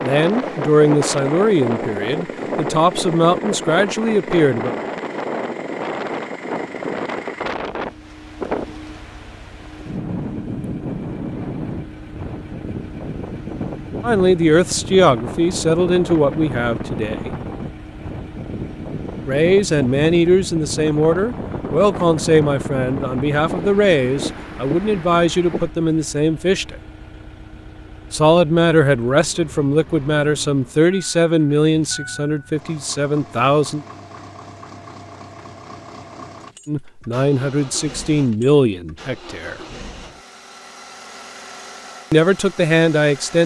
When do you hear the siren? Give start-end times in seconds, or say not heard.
not heard.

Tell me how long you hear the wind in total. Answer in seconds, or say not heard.
26 s.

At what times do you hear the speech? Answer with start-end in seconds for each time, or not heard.
0.0-4.8, 14.0-17.3, 19.2-26.8, 28.1-33.9, 36.6-39.5, 42.1-43.4.